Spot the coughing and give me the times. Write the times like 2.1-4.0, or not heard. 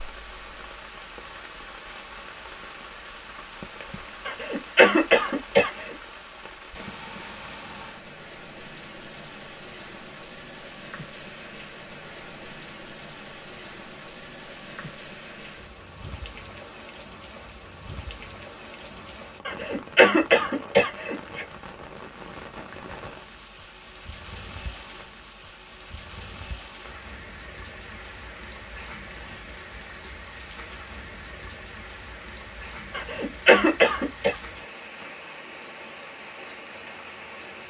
4.2-6.0, 19.4-21.4, 32.9-34.4.